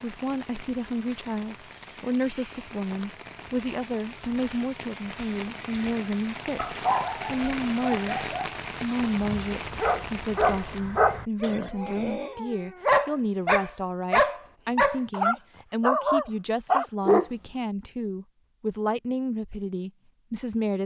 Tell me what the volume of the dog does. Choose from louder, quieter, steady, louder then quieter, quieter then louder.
louder.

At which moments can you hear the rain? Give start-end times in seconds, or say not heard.
0.0-10.8.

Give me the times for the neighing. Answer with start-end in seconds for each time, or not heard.
11.4-12.4.